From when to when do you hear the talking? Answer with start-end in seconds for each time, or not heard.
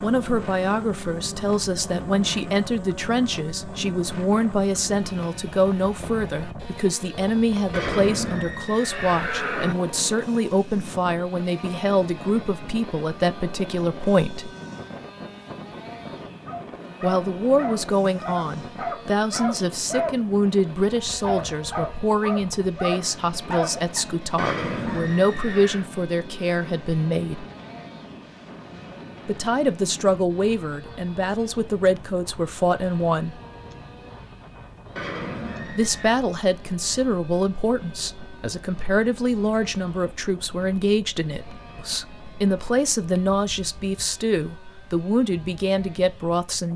0.0-14.5, 17.0-27.4, 29.2-33.4, 35.7-46.7.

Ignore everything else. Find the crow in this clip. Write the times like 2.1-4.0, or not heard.
not heard.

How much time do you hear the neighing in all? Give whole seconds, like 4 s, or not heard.
5 s.